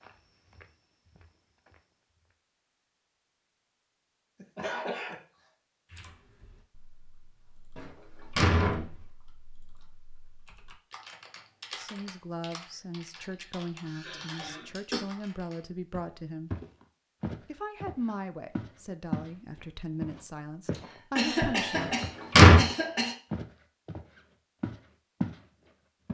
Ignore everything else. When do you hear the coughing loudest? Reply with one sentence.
The loudest moment of the coughing is at 21 seconds.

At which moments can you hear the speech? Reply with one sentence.
The speech can be heard from 11.8 to 16.6 s and from 17.4 to 21.9 s.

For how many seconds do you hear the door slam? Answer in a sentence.
You can hear the door slam for 2 seconds altogether.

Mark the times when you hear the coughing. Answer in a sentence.
You can hear the coughing from 4.4 to 5.2 s, from 13.8 to 15.1 s and from 20.7 to 23.1 s.